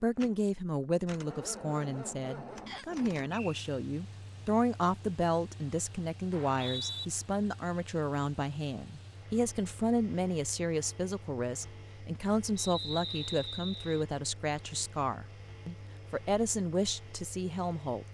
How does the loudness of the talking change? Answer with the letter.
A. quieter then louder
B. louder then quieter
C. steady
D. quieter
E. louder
C.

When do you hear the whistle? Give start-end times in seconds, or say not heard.
2.6-3.6, 6.3-7.0, 12.6-14.1.